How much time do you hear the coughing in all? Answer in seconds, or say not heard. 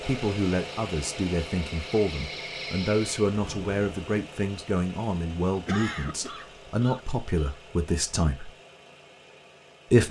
2 s.